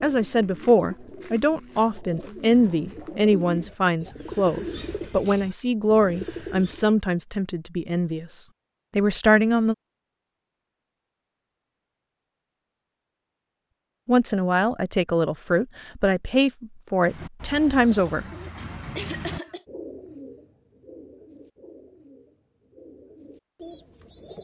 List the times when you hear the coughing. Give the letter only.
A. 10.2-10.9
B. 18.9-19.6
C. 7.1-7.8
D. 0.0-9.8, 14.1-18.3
B.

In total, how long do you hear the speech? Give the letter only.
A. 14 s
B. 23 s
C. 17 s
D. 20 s
A.